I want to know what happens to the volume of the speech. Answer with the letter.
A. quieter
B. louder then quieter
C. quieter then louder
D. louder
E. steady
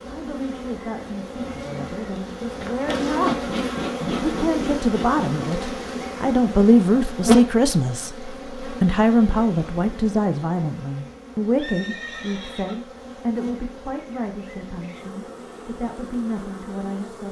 B.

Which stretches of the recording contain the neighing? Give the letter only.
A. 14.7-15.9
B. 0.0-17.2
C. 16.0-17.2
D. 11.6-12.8
D.